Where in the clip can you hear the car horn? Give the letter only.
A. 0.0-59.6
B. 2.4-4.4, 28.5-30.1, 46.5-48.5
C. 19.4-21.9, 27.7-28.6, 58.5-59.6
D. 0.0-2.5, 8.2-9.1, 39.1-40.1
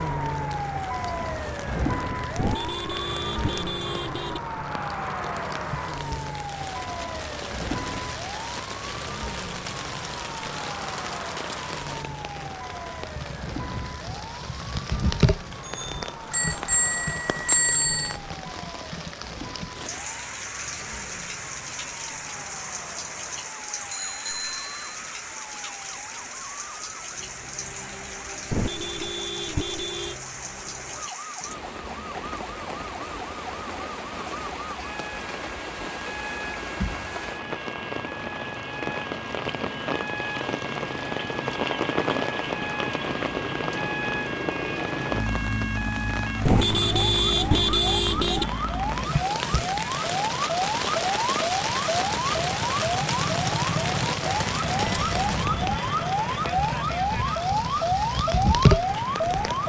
B.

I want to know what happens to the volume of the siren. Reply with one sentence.
The volume of the siren goes down, then up.